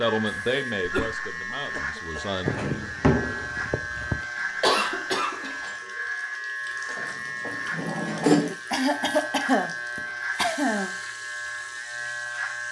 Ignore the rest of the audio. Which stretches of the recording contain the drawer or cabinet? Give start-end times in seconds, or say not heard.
2.5-4.2, 7.0-8.6.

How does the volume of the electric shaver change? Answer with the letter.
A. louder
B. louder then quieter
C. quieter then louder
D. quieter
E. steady
E.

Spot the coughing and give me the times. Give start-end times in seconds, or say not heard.
0.8-2.2, 4.6-5.6, 8.7-10.9.